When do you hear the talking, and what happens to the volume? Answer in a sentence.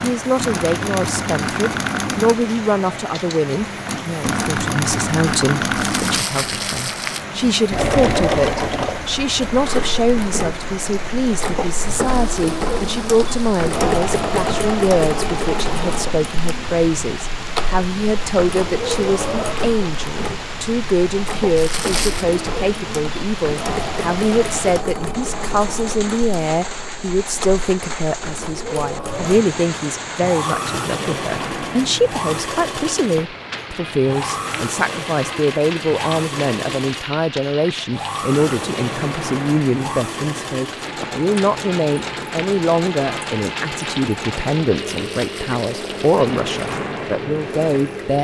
The talking can be heard from 0.0 to 48.2 s, at a steady volume.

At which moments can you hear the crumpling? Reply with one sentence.
You can hear the crumpling from 5.8 to 7.2 s, from 21.6 to 22.2 s and from 44.9 to 46.0 s.